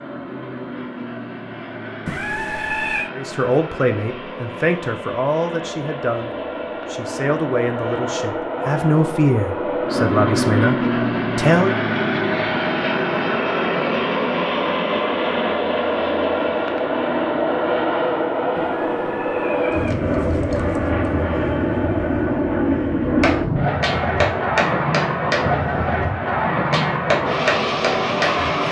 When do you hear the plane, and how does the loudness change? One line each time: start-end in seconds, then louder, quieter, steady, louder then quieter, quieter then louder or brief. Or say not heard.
0.0-28.6 louder.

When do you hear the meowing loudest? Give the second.
3 s.